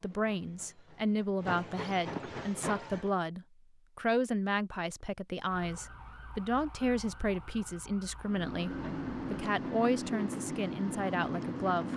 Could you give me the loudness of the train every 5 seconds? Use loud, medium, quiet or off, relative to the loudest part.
medium, loud, loud.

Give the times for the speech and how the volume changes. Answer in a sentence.
You can hear the speech from 0.0 to 11.9 s, at a steady volume.